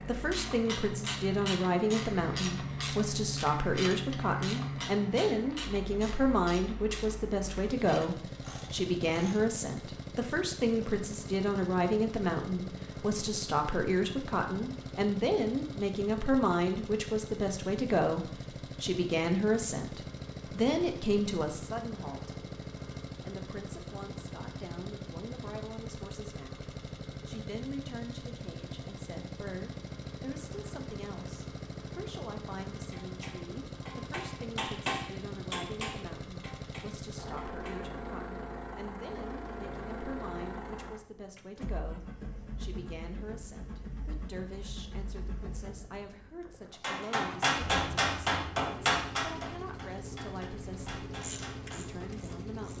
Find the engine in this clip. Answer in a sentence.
The engine can be heard from 0.0 to 52.7 s.